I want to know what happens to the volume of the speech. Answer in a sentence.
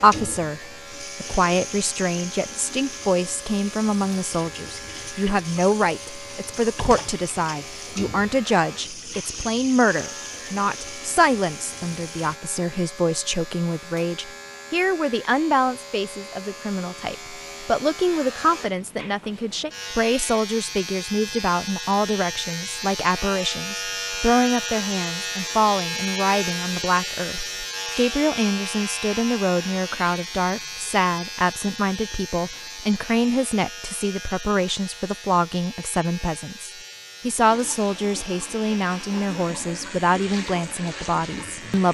The volume of the speech stays about the same.